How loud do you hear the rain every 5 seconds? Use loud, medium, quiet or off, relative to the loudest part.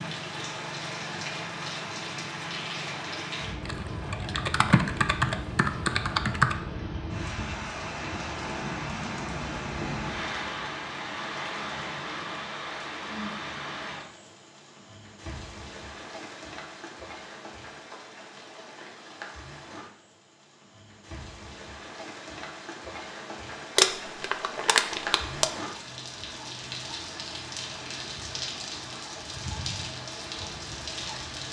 loud, loud, loud, medium, medium, loud, loud.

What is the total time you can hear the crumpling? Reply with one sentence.
The crumpling can be heard for 2 seconds in total.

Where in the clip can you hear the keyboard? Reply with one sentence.
The keyboard can be heard from 3.6 to 6.5 s.